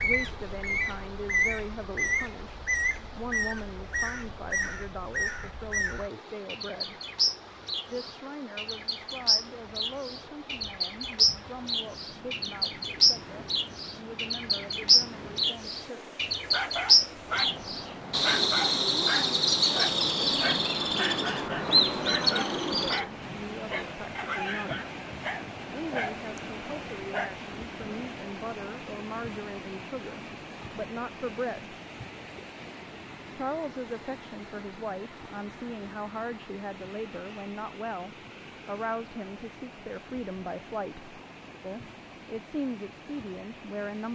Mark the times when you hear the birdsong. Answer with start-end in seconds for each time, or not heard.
0.0-23.0.